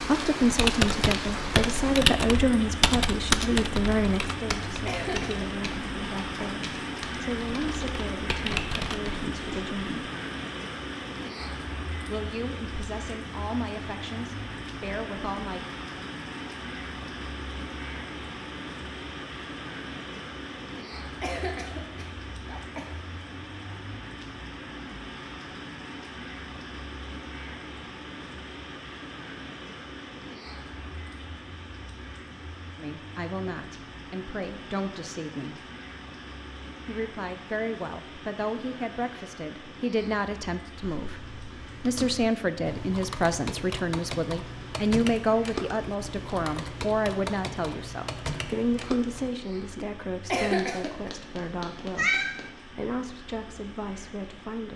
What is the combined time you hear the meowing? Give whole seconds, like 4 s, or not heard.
2 s.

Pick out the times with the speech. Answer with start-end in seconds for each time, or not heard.
0.0-10.1, 12.1-15.7, 32.8-35.6, 36.9-54.7.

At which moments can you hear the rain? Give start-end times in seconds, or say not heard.
0.0-54.7.